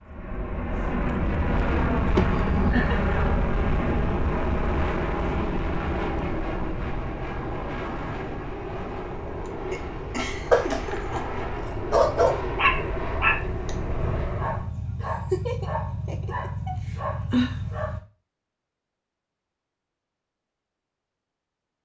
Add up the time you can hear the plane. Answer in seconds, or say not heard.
15 s.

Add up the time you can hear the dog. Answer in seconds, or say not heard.
8 s.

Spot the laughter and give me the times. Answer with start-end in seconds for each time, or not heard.
2.1-3.1, 9.4-11.4, 15.0-17.0.